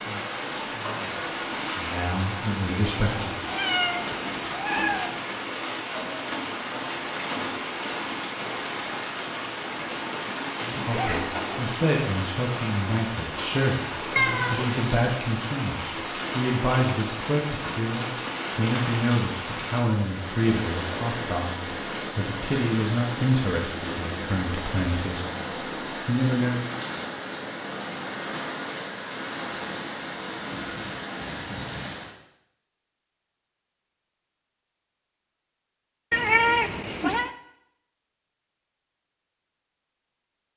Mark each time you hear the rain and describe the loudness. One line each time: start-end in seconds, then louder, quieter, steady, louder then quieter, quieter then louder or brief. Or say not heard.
0.0-32.1 steady.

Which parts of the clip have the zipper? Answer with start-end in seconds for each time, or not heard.
10.7-11.2.